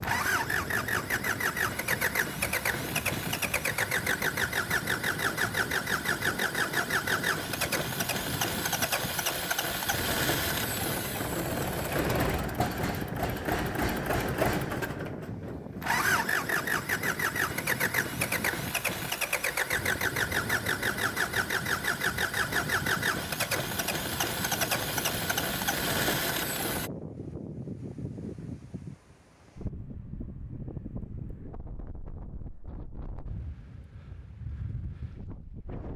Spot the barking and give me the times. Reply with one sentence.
You can't hear the barking here.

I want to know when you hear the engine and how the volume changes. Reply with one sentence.
The engine can be heard from 0.0 to 26.9 s, at a steady volume.